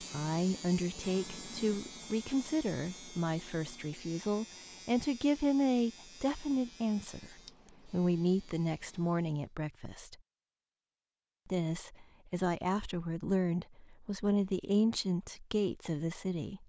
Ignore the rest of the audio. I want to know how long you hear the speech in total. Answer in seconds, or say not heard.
15 s.